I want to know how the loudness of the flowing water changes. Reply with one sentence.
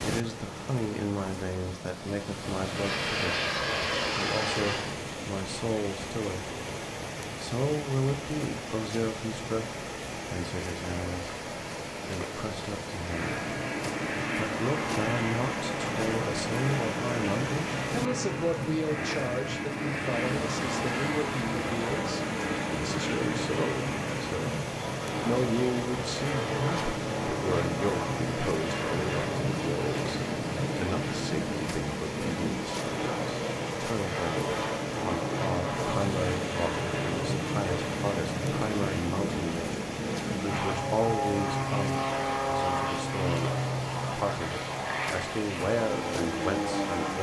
The volume of the flowing water stays about the same.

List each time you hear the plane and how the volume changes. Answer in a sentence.
You can hear the plane briefly from 2.6 to 5.0 s; and from 13.0 to 47.1 s, at a steady volume.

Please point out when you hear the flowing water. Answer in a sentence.
You can hear the flowing water from 0.0 to 47.1 s.